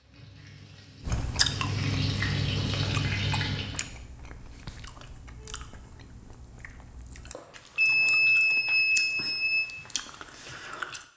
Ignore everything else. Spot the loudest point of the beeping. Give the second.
8 s.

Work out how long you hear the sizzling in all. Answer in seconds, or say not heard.
4 s.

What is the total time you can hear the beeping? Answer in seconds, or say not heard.
2 s.